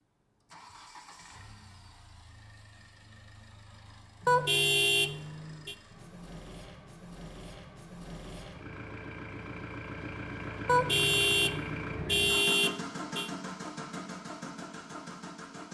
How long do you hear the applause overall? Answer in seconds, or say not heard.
not heard.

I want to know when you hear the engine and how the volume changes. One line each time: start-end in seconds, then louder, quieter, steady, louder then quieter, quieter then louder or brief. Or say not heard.
0.0-15.6 louder.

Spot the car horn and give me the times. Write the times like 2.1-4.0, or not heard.
4.2-5.8, 10.7-13.3.